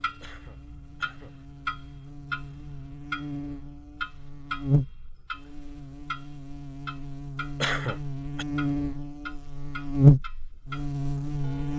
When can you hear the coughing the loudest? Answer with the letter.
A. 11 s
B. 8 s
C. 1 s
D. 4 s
B.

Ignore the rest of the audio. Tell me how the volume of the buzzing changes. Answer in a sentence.
The volume of the buzzing goes up.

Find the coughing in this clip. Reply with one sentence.
You can hear the coughing from 0.2 to 1.4 s and from 7.6 to 8.4 s.